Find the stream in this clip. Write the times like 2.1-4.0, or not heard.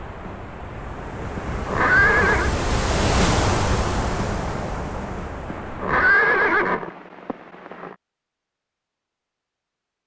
0.0-6.2.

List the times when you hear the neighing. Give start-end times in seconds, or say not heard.
1.4-2.5, 5.5-8.0.